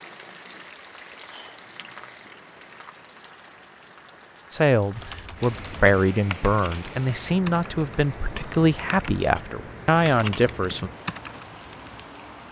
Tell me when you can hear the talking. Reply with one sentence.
You can hear the talking from 4.5 to 10.9 s.